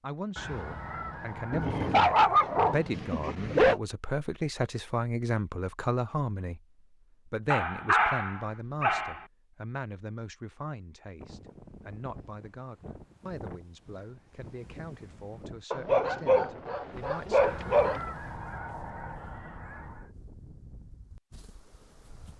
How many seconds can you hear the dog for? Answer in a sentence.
You can hear the dog for 6 seconds altogether.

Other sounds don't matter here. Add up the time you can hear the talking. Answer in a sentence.
You can hear the talking for 17 seconds altogether.